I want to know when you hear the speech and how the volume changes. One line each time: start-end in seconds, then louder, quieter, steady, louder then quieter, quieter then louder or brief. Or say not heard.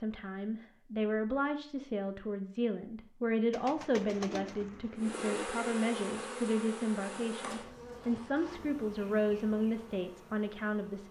0.0-11.0 steady.